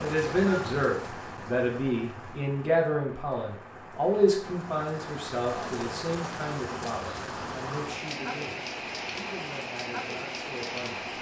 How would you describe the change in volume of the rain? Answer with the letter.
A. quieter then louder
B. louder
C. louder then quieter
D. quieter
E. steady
A.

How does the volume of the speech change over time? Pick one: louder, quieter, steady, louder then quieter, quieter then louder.
quieter.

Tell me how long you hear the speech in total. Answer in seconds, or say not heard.
11 s.